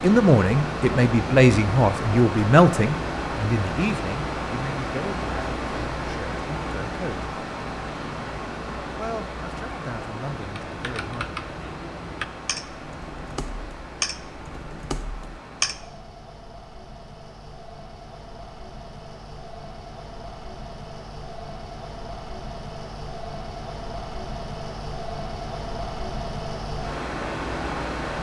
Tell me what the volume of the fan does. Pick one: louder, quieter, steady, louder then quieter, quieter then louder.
quieter then louder.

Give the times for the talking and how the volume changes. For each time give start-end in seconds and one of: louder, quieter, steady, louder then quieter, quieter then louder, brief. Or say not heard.
0.0-7.3 quieter
8.9-11.3 brief.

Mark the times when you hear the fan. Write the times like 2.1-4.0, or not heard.
0.0-28.1.